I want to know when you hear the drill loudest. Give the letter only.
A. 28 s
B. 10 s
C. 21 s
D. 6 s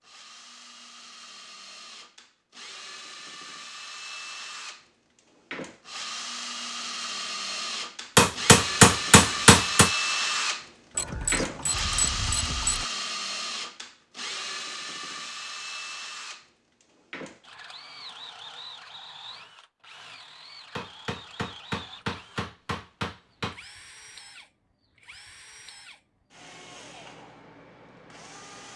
B.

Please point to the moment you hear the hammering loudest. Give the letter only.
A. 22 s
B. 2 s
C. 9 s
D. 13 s
C.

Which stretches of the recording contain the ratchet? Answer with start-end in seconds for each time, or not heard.
10.9-12.8.